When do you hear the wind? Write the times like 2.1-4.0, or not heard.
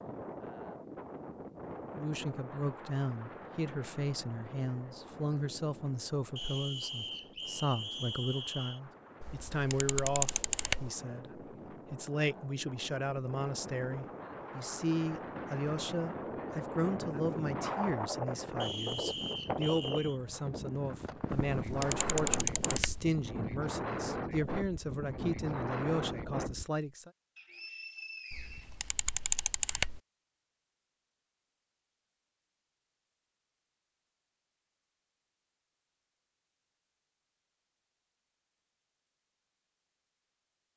0.0-26.7.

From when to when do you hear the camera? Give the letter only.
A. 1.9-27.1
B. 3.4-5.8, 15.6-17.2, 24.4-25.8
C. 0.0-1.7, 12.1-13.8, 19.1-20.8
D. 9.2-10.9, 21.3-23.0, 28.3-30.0
D.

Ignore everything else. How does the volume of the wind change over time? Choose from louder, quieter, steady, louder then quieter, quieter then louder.
quieter then louder.